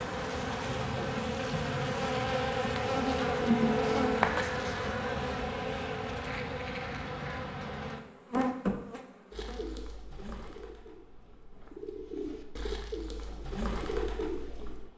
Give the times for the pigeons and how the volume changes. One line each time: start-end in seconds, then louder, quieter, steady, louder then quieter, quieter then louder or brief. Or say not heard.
9.3-14.9 quieter then louder.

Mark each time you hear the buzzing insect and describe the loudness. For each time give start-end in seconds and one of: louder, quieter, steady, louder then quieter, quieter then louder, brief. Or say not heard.
0.0-14.9 quieter.